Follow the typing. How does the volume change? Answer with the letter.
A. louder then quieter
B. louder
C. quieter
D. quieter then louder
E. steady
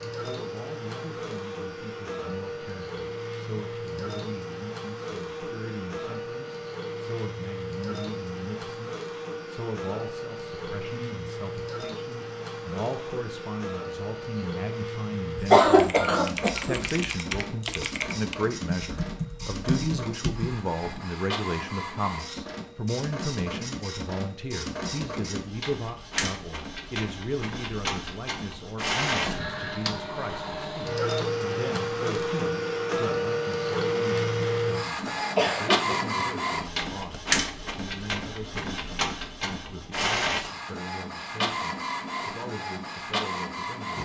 E.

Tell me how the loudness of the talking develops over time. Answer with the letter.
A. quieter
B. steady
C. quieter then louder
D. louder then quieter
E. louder
D.